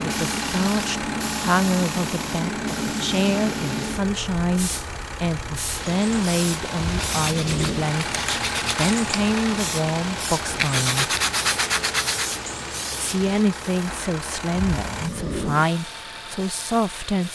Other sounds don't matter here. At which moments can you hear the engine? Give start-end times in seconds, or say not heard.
0.0-17.3.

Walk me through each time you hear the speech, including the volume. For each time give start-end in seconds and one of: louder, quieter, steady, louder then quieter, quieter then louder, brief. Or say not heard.
0.0-11.1 steady
13.0-17.3 quieter then louder.